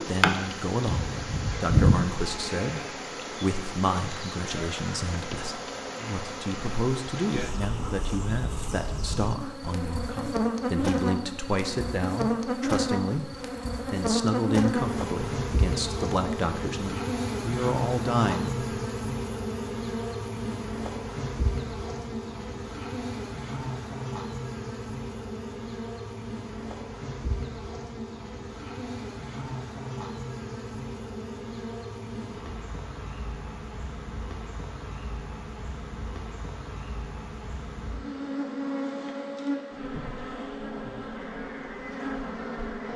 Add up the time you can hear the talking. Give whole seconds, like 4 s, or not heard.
19 s.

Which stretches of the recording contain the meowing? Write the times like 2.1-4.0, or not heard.
not heard.